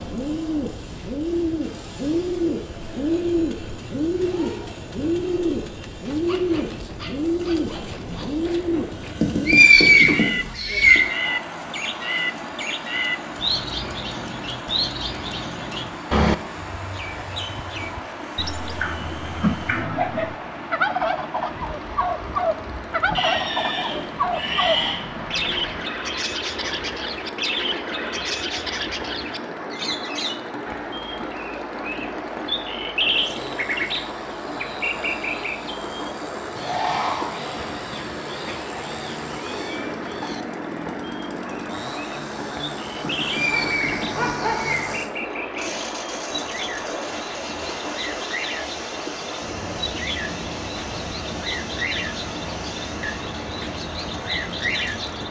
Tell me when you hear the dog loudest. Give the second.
44 s.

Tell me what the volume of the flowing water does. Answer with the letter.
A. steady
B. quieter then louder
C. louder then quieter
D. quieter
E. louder
A.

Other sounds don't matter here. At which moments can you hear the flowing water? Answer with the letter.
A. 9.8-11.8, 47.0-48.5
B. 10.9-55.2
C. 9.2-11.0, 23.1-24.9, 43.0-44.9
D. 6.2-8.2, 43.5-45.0
B.